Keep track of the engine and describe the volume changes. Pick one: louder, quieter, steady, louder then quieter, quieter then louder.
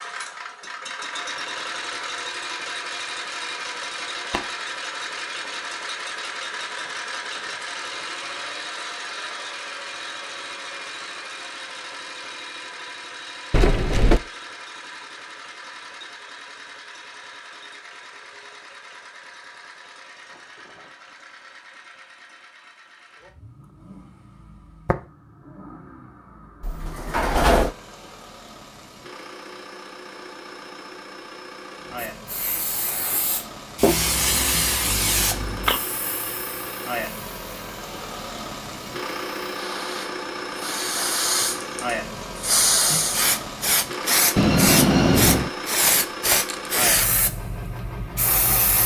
quieter then louder.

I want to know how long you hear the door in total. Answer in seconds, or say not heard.
3 s.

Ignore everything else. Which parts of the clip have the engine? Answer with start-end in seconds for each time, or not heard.
0.0-48.8.